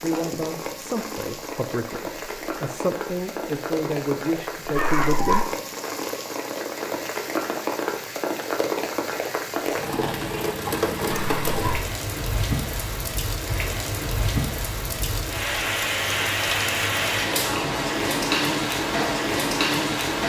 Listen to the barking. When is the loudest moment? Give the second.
5 s.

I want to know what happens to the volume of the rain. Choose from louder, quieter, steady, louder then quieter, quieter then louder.
louder.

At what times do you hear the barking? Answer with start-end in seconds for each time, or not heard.
4.7-5.5, 11.1-11.8.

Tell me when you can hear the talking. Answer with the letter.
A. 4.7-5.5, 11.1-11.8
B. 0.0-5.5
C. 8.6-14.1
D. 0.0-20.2
B.